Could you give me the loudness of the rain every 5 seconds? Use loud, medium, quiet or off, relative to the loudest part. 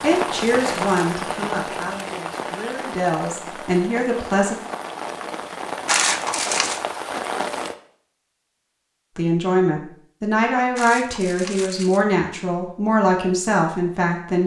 loud, loud, off.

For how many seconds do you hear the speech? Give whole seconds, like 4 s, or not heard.
10 s.